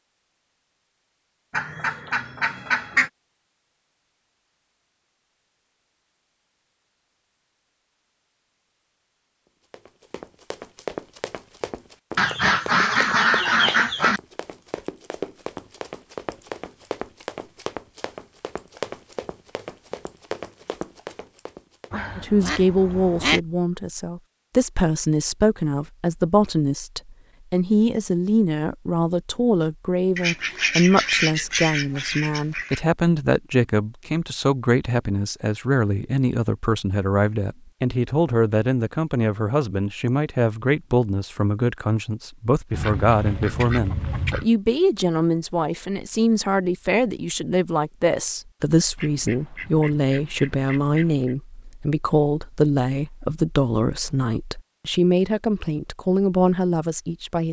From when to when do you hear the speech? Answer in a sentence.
You can hear the speech from 22.1 to 57.4 s.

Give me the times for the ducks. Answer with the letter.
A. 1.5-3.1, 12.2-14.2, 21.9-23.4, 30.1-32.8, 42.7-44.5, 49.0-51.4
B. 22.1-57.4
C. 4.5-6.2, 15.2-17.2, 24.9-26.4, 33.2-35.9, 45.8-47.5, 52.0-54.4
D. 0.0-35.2
A.